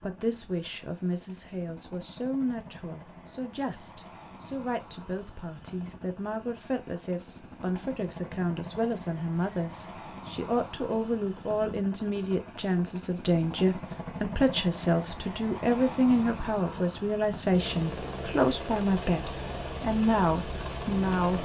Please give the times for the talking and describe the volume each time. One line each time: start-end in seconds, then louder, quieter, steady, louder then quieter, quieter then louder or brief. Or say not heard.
0.0-21.4 louder.